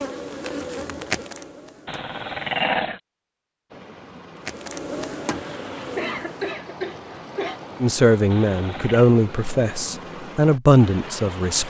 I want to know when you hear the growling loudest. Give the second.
3 s.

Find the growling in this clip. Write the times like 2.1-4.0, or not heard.
1.9-3.0, 8.3-9.1.